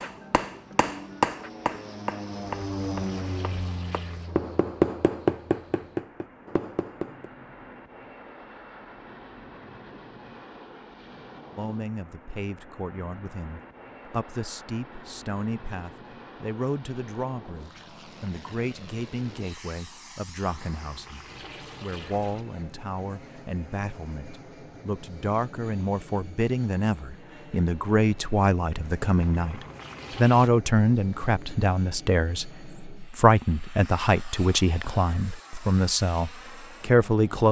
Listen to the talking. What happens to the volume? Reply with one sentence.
The volume of the talking goes up.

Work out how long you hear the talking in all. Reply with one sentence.
You can hear the talking for 26 seconds altogether.